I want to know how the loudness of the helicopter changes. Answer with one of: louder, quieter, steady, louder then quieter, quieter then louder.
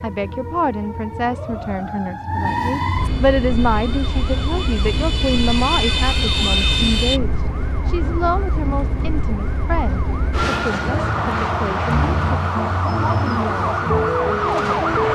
louder.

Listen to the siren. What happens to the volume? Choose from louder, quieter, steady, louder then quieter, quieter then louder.
louder.